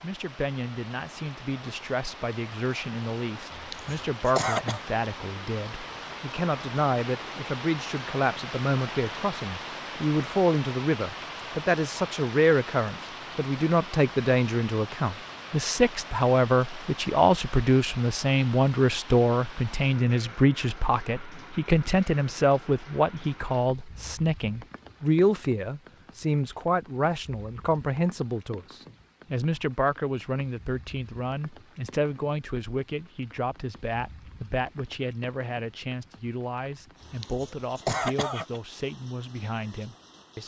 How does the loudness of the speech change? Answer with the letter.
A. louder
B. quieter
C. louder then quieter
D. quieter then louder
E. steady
C.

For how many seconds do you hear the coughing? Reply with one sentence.
You can hear the coughing for 3 seconds altogether.